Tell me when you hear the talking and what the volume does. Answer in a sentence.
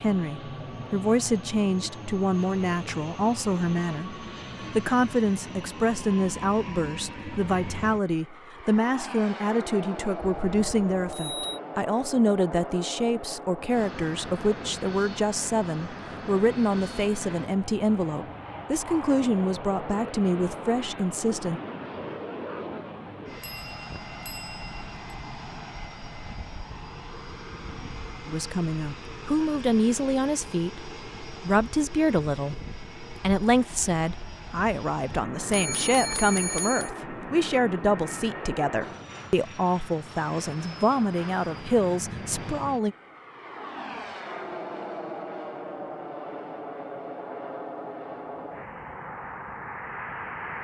You can hear the talking from 0.0 to 21.6 s, at a steady volume; and from 28.2 to 43.0 s, at a steady volume.